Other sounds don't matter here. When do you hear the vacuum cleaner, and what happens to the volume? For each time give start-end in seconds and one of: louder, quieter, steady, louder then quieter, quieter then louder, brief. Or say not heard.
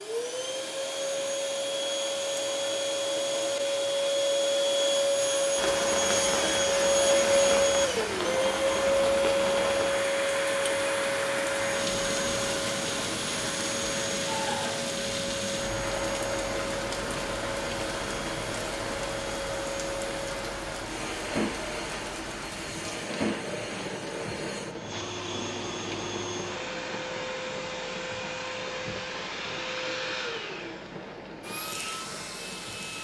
0.0-32.9 quieter.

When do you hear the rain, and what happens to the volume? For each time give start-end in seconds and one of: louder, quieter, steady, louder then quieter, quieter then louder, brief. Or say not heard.
5.5-32.9 quieter.